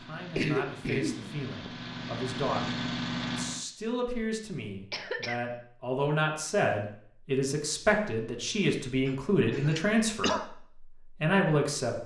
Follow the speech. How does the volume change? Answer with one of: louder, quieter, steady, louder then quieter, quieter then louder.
louder.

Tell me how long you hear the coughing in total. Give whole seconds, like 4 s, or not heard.
3 s.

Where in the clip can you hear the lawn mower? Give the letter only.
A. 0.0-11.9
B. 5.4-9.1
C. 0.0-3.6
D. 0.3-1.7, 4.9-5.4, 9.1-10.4
C.